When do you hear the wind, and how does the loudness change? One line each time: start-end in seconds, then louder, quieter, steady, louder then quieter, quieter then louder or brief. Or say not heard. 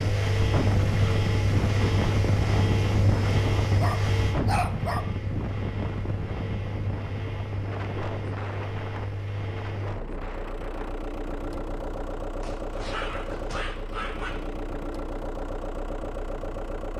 0.0-16.8 quieter.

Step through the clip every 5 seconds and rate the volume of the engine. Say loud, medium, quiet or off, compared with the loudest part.
loud, medium, medium, medium.